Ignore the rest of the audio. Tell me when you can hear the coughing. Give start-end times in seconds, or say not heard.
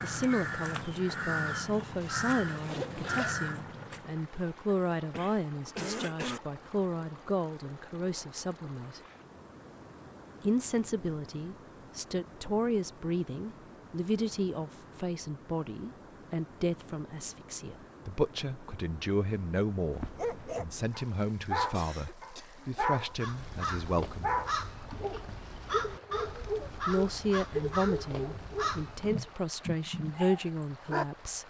5.1-6.4, 21.7-22.7.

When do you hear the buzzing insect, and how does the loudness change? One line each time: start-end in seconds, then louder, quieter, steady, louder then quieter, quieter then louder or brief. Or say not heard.
not heard.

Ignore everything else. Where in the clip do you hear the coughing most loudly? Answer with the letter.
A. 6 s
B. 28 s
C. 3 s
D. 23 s
A.